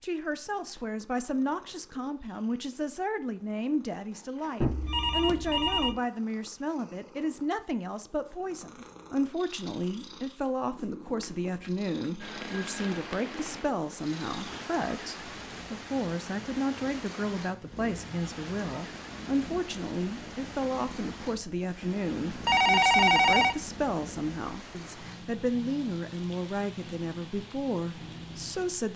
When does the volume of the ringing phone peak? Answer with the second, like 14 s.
23 s.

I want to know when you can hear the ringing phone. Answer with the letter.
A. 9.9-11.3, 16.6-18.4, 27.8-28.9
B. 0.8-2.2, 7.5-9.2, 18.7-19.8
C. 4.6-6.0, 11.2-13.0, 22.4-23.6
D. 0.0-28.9
C.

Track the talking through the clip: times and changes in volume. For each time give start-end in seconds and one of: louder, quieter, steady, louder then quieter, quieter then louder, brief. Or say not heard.
0.0-28.9 steady.